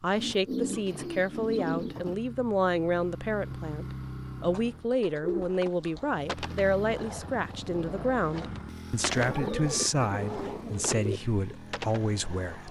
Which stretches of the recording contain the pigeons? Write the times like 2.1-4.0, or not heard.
0.1-2.1, 4.3-6.1, 9.2-11.2.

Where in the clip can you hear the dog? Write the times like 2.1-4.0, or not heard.
not heard.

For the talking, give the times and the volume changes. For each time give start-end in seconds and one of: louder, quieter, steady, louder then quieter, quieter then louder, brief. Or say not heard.
0.0-12.6 steady.